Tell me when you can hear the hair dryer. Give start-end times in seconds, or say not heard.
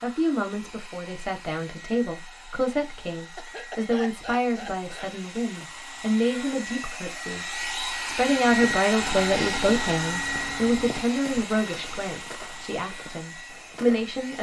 0.0-14.3.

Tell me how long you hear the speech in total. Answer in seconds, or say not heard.
14 s.